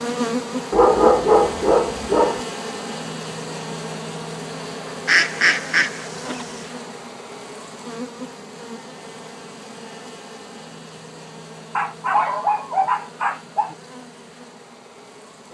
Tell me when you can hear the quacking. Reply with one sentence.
You can hear the quacking from 5.0 to 6.6 s.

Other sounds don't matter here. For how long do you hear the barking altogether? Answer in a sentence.
You can hear the barking for 4 seconds altogether.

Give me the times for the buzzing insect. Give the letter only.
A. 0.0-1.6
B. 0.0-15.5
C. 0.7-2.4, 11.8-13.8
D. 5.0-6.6
B.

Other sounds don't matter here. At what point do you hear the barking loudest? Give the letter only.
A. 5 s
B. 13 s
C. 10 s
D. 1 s
D.